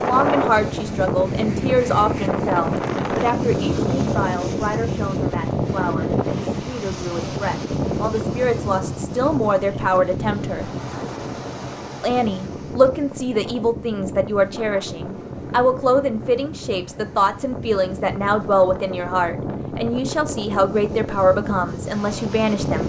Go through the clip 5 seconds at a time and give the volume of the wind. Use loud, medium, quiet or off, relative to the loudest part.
loud, loud, medium, medium, medium.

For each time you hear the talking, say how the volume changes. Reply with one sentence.
The talking can be heard from 0.0 to 10.7 s, getting quieter then louder; and from 12.0 to 22.8 s, at a steady volume.